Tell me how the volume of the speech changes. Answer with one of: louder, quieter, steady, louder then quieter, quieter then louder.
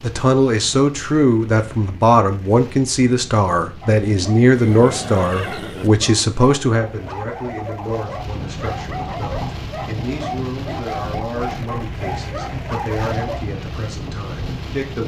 quieter.